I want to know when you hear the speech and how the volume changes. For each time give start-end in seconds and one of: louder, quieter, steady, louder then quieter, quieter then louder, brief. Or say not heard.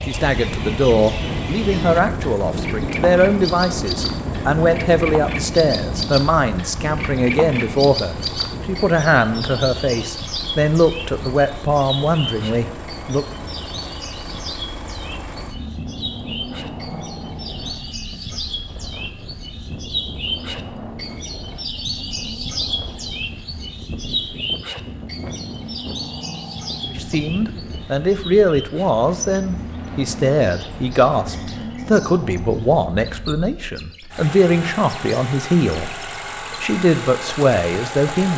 0.1-13.2 steady
26.9-38.3 steady.